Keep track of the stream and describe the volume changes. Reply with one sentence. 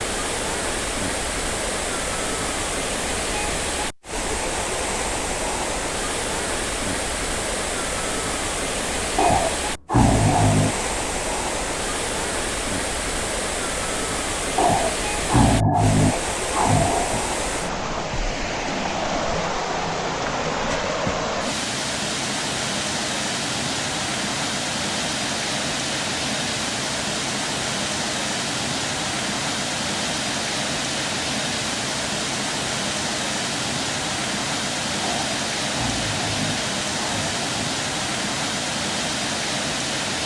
The loudness of the stream stays about the same.